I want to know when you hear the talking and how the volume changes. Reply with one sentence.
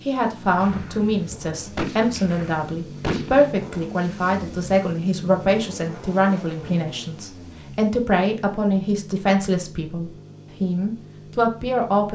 The talking can be heard from 0.0 to 12.1 s, at a steady volume.